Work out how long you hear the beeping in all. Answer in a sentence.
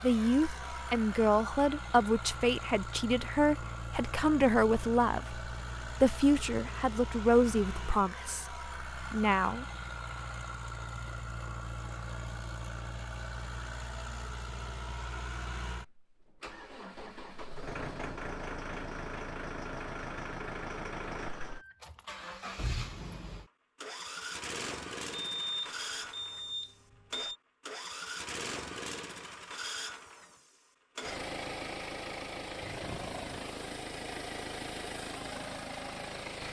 The beeping can be heard for 2 seconds in total.